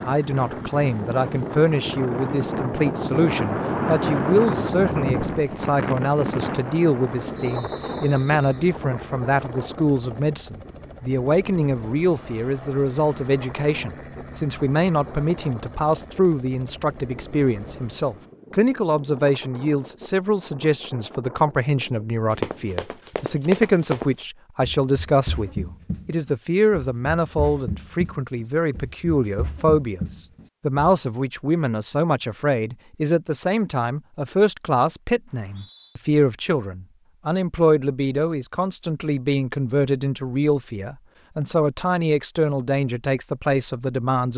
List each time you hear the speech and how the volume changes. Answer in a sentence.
You can hear the speech from 0.0 to 44.3 s, at a steady volume.